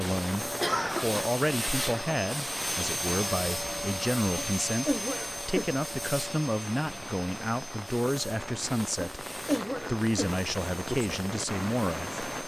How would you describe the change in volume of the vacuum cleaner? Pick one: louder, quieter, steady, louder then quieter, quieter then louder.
quieter.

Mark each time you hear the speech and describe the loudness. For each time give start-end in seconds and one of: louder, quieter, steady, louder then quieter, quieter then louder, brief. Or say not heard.
0.0-12.2 steady.